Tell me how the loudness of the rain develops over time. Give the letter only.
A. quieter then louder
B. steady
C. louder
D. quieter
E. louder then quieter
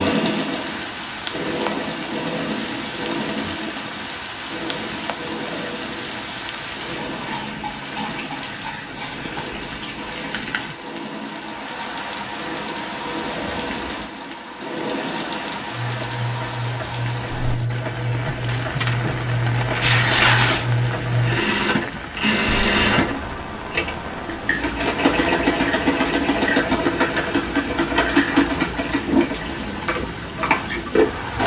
B.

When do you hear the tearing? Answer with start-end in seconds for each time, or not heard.
18.4-20.6.